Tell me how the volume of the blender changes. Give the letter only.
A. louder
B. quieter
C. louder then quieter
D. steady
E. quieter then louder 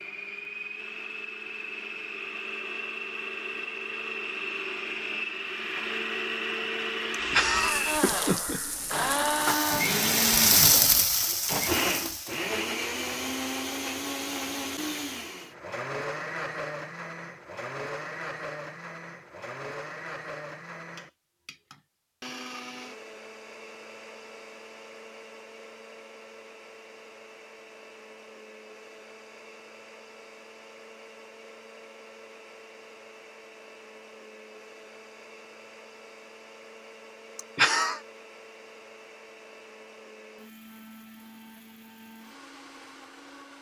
B.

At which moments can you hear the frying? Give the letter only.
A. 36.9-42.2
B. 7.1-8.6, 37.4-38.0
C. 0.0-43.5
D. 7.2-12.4
D.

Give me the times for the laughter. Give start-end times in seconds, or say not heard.
7.1-8.6, 37.4-38.0.